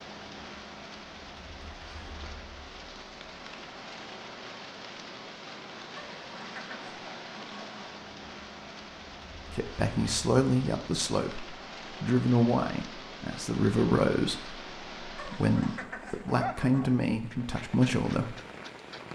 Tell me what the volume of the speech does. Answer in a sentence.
The volume of the speech stays about the same.